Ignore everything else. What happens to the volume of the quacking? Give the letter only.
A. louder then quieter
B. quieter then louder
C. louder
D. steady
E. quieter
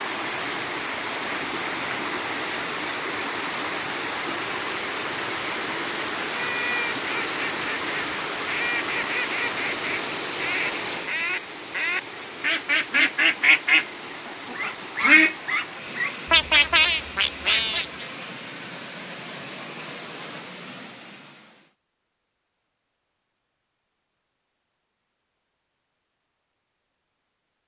C.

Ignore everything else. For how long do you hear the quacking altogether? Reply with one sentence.
You can hear the quacking for 12 seconds altogether.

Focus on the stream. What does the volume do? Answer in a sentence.
The volume of the stream goes down.